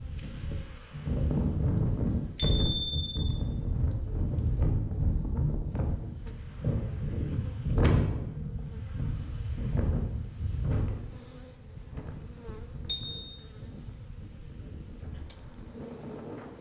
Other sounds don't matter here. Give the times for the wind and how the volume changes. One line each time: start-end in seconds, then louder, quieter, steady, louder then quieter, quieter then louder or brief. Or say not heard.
0.0-16.5 quieter.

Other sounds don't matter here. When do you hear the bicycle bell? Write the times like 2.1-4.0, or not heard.
2.4-3.1, 12.8-13.2.